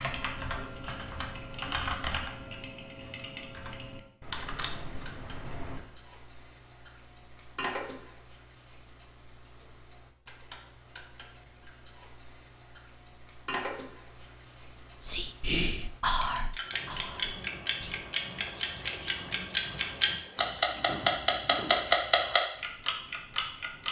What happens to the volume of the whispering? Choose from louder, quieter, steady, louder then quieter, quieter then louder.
quieter.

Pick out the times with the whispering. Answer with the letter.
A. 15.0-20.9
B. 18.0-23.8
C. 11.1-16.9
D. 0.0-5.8
A.